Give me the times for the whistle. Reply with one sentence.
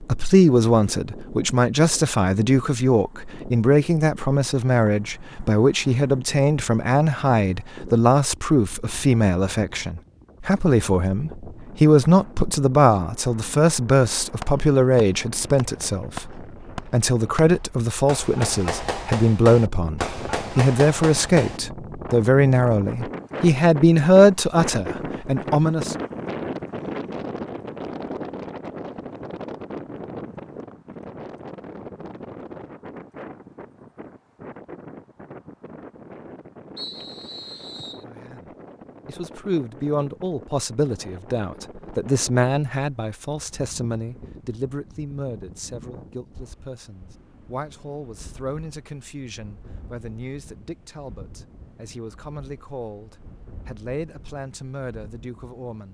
The whistle can be heard from 36.8 to 38.0 s.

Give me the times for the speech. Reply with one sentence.
You can hear the speech from 0.0 to 25.9 s and from 38.0 to 55.8 s.